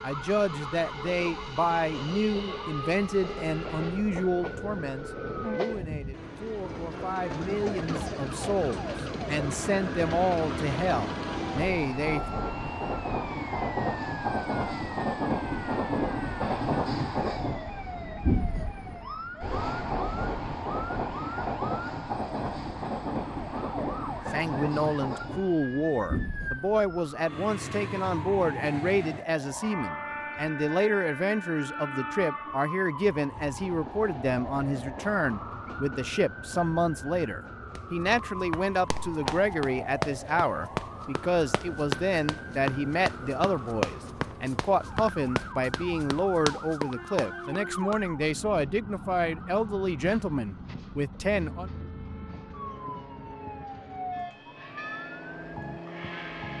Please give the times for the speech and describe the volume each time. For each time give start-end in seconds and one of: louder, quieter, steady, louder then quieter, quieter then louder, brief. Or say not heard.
0.0-12.4 quieter then louder
24.3-51.7 steady.